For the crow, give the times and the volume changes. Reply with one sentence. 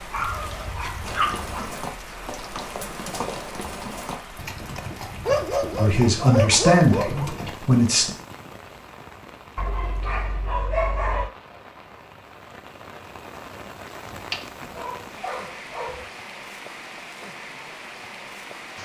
You can't hear the crow here.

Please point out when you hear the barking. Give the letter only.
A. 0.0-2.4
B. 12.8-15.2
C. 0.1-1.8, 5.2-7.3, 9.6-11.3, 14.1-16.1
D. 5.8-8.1
C.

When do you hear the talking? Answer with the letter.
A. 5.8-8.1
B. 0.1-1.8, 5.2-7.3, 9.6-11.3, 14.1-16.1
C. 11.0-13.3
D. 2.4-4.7
A.